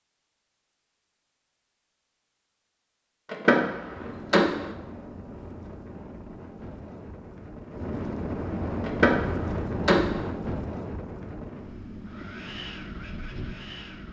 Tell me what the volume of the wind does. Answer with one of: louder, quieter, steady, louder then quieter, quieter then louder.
louder then quieter.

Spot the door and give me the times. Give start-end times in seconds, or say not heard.
3.3-4.7, 8.8-10.2.